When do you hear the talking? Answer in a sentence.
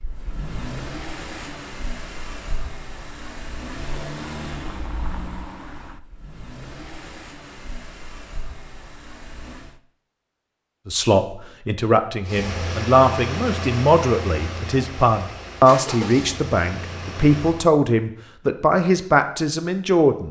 You can hear the talking from 10.8 to 20.2 s.